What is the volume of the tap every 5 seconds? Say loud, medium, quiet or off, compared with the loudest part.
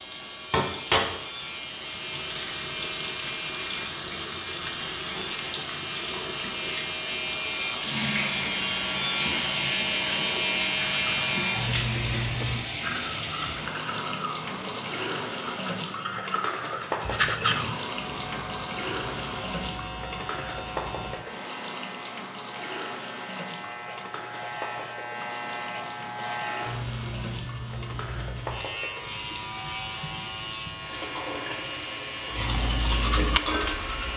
loud, loud, loud, loud, medium, medium, loud.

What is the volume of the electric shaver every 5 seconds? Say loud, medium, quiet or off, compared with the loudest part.
medium, loud, loud, medium, medium, medium, medium.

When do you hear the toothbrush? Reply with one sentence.
The toothbrush can be heard from 10.9 to 17.9 s and from 32.3 to 34.1 s.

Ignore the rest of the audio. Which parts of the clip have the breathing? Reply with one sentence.
You can't hear the breathing here.